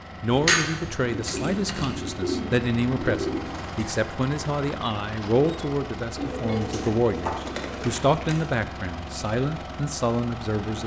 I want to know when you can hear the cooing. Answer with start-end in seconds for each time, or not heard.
1.1-3.9, 6.2-8.0.